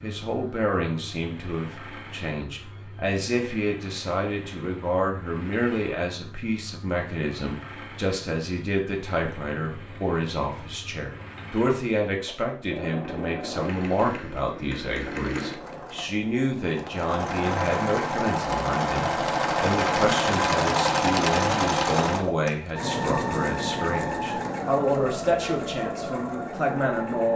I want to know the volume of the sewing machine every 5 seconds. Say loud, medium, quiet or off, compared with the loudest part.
quiet, quiet, quiet, loud, loud, medium.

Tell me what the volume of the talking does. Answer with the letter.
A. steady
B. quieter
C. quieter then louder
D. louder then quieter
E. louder
A.